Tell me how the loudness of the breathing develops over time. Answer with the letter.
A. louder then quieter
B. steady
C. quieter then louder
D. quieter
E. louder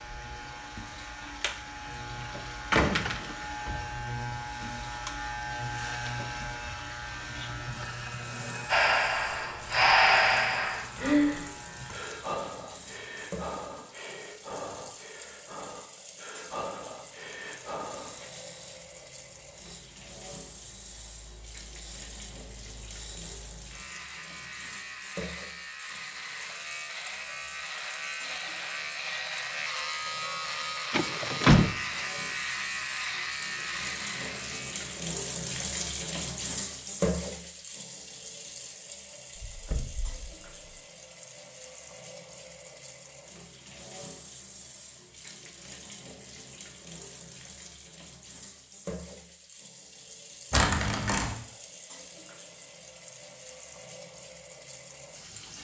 D.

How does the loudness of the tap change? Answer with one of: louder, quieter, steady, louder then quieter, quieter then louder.
louder then quieter.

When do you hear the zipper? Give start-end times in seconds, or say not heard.
50.5-51.4.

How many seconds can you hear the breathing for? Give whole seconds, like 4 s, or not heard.
10 s.